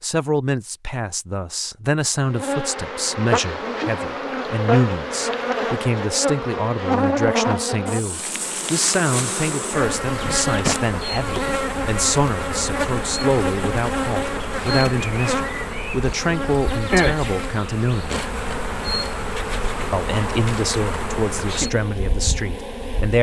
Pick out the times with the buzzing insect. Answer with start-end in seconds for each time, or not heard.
2.2-23.1.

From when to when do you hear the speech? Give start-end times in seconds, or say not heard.
0.0-18.2, 19.9-23.1.